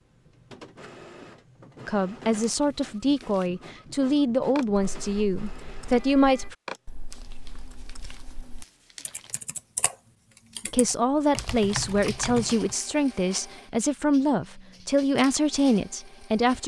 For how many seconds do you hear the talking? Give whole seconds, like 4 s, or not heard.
11 s.